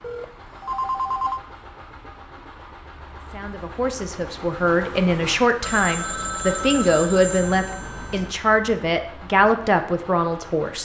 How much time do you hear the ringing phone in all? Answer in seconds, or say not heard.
4 s.